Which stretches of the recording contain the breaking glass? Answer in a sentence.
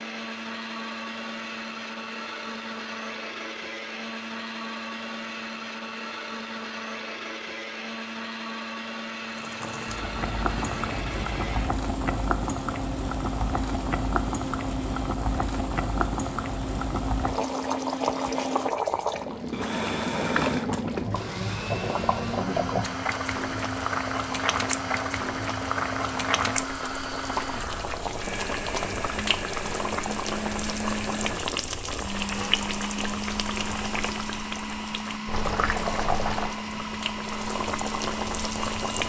The breaking glass can't be heard in this clip.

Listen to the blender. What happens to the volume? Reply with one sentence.
The loudness of the blender stays about the same.